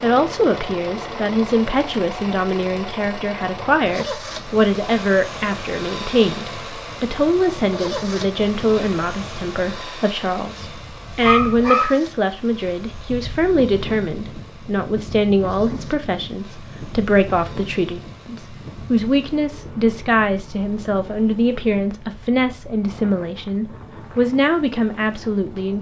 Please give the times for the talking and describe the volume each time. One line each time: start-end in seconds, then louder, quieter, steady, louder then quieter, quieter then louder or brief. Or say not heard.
0.0-25.7 steady.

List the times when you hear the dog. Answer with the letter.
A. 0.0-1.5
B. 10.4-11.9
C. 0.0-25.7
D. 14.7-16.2
B.